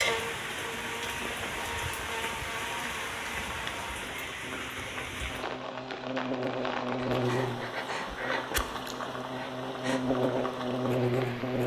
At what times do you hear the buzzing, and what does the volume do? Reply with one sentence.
The buzzing can be heard from 0.0 to 11.6 s, getting louder.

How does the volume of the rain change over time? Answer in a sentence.
The volume of the rain stays about the same.